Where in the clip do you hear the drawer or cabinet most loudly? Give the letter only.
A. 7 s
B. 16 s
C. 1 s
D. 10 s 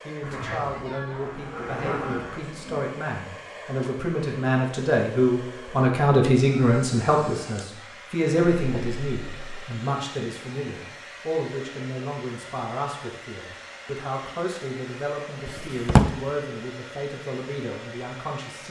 B.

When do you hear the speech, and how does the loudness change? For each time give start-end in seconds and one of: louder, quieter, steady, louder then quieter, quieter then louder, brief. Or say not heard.
0.1-18.6 louder then quieter.